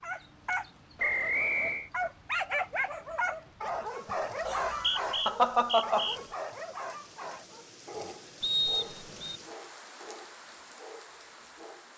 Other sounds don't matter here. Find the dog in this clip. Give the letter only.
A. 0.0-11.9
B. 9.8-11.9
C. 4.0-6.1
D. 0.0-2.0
A.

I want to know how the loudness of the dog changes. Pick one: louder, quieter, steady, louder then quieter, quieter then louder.
quieter.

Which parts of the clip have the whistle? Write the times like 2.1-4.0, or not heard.
0.9-1.9, 4.5-6.2, 8.4-9.4.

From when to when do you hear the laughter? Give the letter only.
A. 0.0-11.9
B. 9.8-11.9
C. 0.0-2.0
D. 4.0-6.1
D.